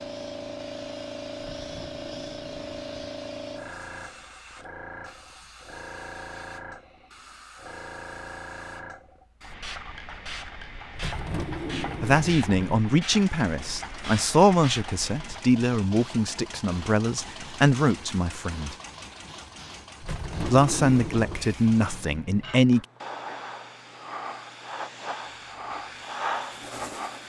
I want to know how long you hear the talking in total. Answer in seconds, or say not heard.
9 s.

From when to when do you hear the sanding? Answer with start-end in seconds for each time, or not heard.
not heard.